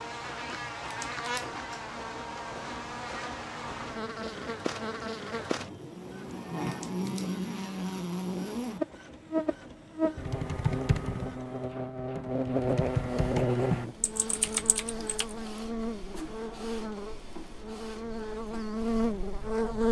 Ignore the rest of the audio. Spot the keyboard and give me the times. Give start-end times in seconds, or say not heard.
10.2-15.3.